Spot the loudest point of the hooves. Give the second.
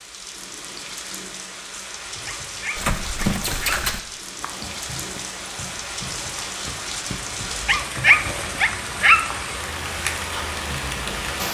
3 s.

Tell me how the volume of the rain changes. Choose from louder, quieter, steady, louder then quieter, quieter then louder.
louder.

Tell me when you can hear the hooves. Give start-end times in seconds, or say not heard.
2.8-8.7.